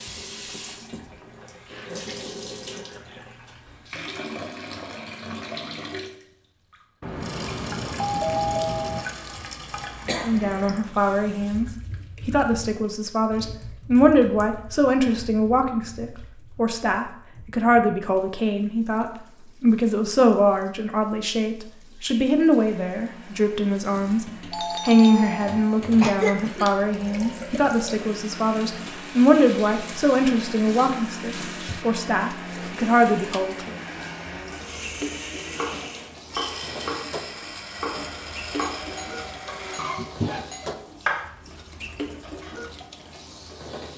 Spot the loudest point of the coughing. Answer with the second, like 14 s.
26 s.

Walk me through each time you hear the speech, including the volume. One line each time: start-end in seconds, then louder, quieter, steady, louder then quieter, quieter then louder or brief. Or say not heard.
10.1-33.8 steady.